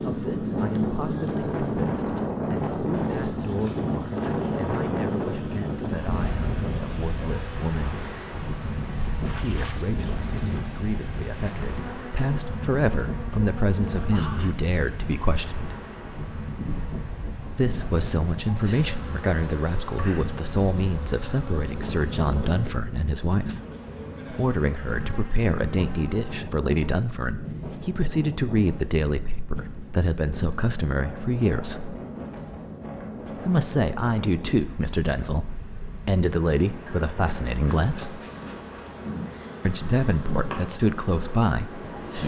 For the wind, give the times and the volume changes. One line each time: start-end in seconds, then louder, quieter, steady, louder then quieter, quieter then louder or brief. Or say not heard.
0.0-42.2 quieter.